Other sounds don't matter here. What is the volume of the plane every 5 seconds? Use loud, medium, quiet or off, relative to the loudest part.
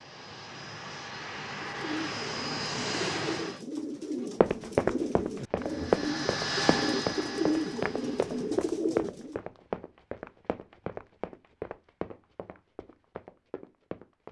loud, loud, off.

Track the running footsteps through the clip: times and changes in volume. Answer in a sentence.
You can hear the running footsteps from 4.4 to 14.2 s, getting quieter.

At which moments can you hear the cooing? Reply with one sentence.
You can hear the cooing from 1.5 to 9.4 s.